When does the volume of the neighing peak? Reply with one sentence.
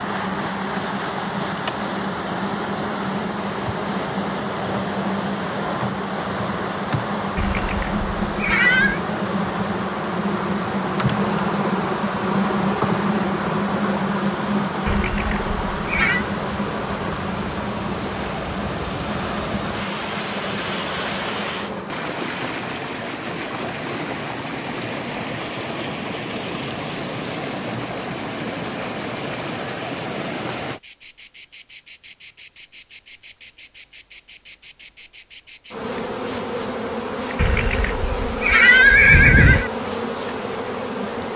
The volume of the neighing peaks at 39 seconds.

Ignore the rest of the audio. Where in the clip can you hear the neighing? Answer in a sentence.
The neighing can be heard from 7.3 to 9.0 s, from 14.8 to 16.2 s and from 37.4 to 39.7 s.